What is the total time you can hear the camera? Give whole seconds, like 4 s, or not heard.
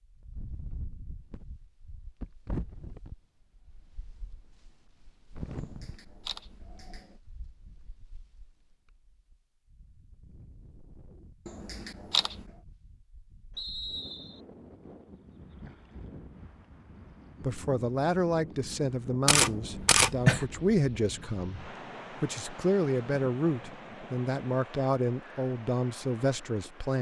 4 s.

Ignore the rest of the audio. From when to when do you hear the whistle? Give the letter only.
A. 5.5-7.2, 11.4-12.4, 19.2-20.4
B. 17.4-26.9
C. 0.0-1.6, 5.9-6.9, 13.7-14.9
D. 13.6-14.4
D.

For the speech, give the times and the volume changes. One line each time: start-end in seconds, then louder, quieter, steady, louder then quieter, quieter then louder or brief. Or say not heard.
17.4-26.9 steady.